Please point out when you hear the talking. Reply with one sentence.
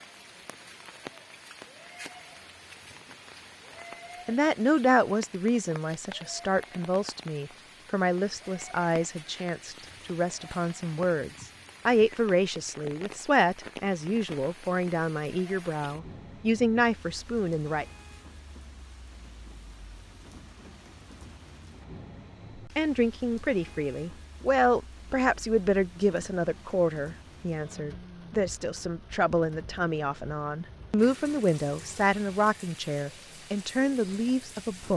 You can hear the talking from 4.2 to 17.9 s and from 22.6 to 34.9 s.